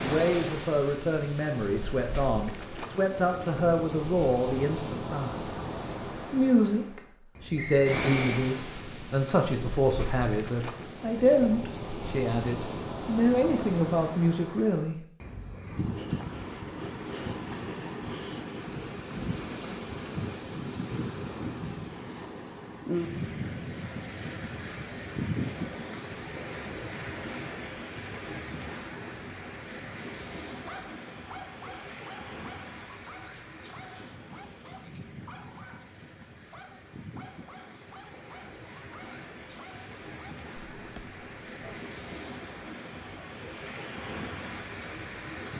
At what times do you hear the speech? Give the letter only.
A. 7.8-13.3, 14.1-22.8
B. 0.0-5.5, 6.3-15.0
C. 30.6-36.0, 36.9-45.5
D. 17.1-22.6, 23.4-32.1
B.